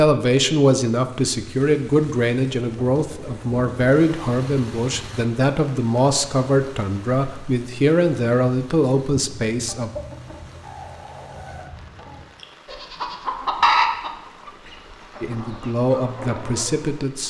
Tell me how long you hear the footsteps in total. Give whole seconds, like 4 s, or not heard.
not heard.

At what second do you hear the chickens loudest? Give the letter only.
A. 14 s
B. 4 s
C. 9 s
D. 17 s
A.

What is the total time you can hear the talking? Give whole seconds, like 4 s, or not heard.
12 s.